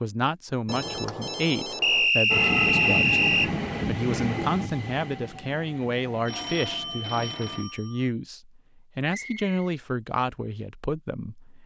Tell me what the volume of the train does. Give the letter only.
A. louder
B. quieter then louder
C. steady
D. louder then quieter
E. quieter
E.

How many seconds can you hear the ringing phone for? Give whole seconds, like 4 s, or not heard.
3 s.